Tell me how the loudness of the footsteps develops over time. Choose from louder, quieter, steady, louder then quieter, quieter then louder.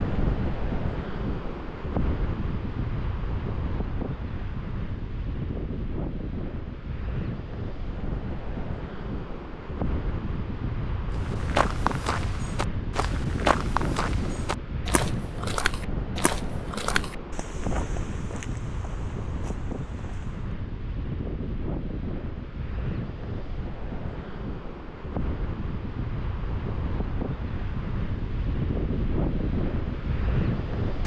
quieter.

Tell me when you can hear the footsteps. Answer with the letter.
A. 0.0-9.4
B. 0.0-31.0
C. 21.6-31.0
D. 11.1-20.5
D.